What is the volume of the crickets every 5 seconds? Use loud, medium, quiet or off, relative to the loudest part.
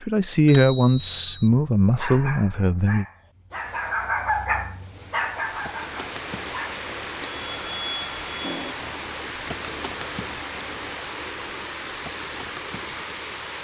medium, loud, loud.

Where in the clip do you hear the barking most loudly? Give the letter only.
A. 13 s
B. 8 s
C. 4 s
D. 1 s
C.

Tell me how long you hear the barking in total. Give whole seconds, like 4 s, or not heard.
6 s.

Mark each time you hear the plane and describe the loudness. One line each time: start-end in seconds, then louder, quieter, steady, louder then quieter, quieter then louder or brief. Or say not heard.
not heard.